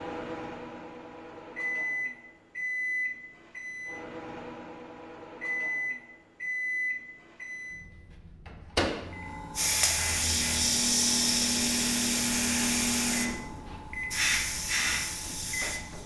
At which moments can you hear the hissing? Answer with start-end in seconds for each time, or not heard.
9.2-16.0.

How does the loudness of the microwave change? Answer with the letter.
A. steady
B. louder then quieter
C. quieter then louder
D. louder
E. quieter
A.